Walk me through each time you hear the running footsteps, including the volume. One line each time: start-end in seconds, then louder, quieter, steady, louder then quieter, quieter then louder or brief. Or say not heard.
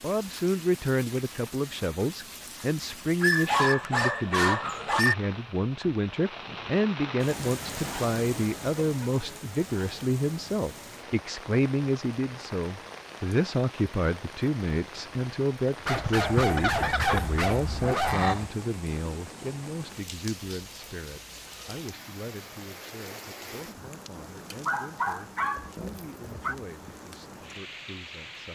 not heard.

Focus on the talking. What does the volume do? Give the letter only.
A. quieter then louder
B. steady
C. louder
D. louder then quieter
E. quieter
E.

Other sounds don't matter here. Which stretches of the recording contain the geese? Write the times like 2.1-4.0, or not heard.
16.0-18.5.